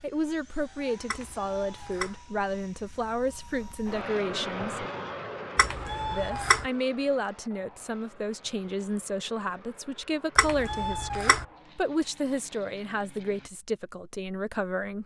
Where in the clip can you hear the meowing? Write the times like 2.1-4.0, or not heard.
1.1-2.2, 5.5-6.7, 10.3-11.4.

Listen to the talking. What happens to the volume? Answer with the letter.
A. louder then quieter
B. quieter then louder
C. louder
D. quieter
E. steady
E.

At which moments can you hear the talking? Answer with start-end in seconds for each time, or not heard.
0.0-4.8, 6.1-15.0.